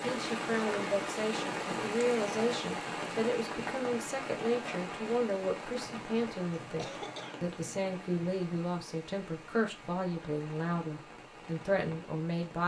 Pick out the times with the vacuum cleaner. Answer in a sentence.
You can't hear the vacuum cleaner here.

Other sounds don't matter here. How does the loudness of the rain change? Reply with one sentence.
The loudness of the rain goes down.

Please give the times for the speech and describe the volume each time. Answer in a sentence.
The speech can be heard from 0.0 to 12.6 s, at a steady volume.